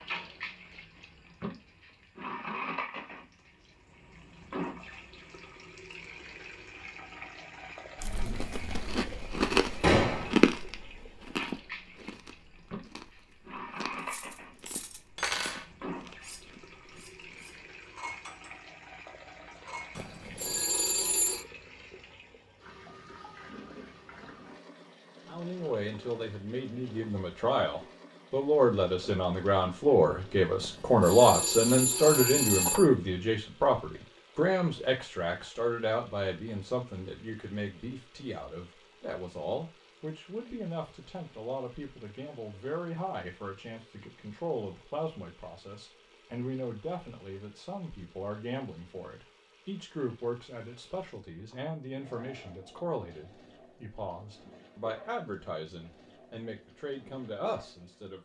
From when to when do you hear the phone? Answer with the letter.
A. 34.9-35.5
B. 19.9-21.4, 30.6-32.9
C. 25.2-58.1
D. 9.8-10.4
B.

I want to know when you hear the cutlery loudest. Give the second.
15 s.